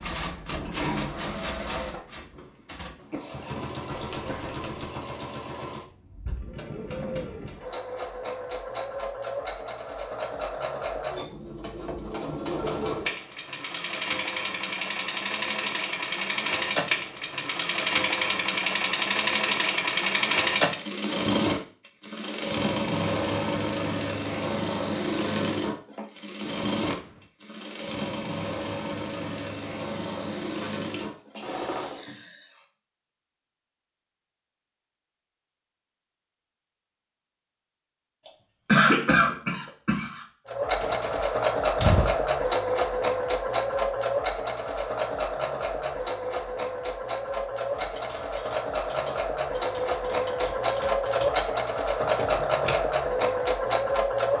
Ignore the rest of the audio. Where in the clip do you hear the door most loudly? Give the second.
42 s.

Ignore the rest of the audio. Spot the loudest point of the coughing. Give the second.
39 s.